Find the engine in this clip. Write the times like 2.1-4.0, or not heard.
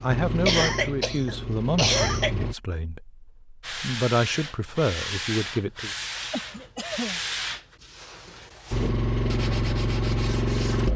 0.0-2.5, 8.7-10.9.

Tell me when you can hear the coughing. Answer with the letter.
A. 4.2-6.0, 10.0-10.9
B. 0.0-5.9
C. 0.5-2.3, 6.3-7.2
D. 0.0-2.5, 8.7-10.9
C.